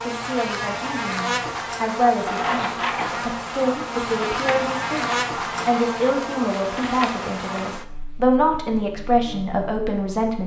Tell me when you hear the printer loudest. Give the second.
3 s.